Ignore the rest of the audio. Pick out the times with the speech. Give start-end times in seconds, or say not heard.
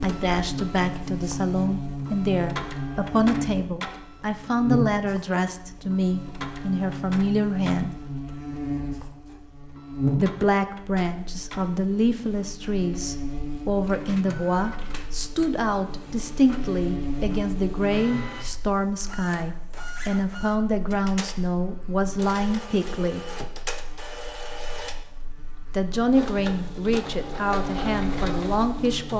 0.0-7.9, 10.2-23.2, 25.7-29.1.